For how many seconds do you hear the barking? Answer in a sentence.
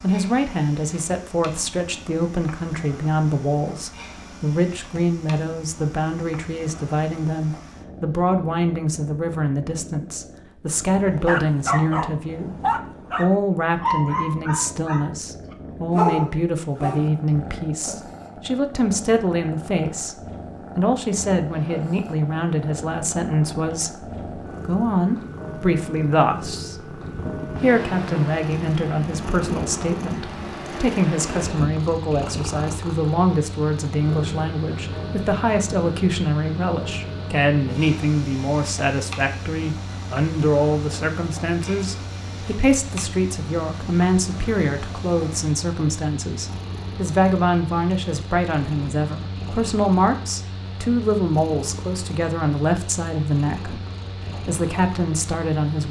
The barking can be heard for 6 seconds in total.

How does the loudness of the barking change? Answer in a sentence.
The loudness of the barking goes down, then up.